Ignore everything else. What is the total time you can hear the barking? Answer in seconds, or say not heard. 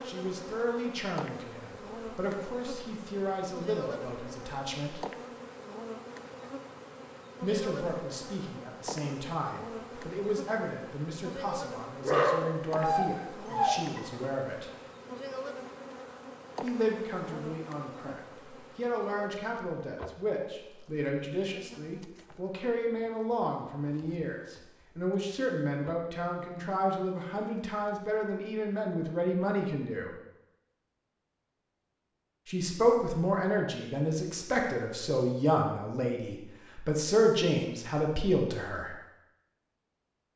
2 s.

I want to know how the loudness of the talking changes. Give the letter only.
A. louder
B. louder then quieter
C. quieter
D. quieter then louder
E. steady
A.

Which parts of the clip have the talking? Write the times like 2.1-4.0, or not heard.
0.0-5.0, 7.4-14.7, 16.6-30.1, 32.5-39.0.